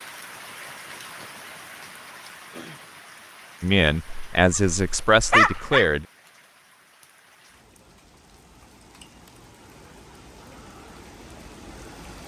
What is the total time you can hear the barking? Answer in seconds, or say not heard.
2 s.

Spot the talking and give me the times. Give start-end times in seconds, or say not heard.
3.6-6.0.